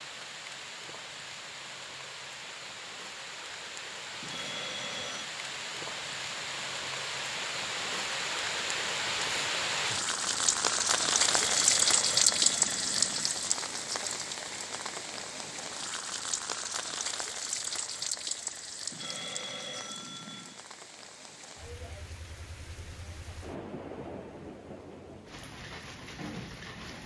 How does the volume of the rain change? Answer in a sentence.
The loudness of the rain goes up, then down.